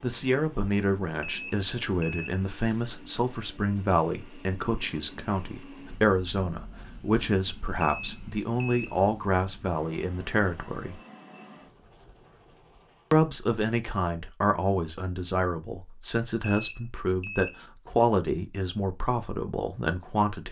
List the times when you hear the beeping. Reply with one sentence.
You can hear the beeping from 1.2 to 2.4 s, from 7.8 to 8.9 s and from 16.4 to 17.6 s.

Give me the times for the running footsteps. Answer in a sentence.
You can't hear the running footsteps here.